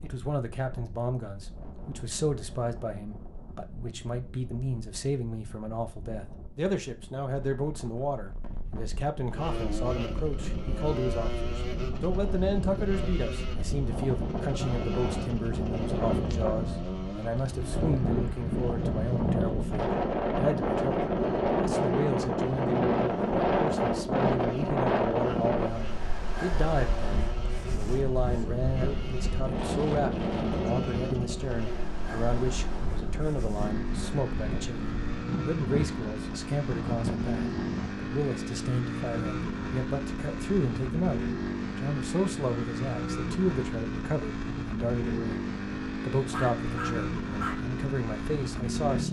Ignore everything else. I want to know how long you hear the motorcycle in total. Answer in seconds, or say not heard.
40 s.